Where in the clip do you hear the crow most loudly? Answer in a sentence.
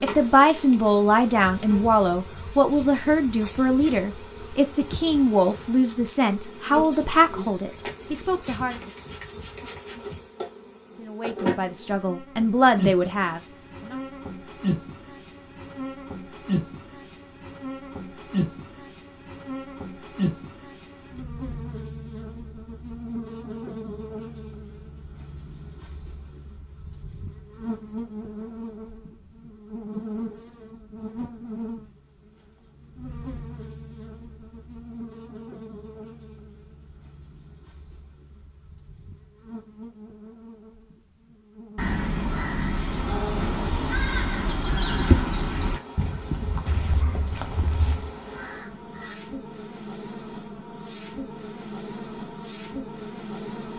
The loudest moment of the crow is at 45 seconds.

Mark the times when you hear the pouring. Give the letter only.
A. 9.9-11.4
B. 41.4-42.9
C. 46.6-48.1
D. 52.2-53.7
C.